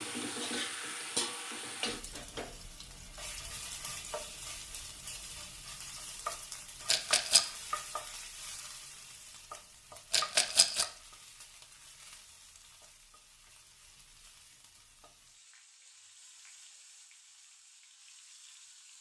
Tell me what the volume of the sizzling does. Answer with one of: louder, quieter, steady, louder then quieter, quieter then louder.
quieter.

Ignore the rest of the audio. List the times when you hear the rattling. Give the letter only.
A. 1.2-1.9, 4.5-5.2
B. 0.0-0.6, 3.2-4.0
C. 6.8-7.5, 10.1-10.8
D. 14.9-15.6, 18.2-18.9
C.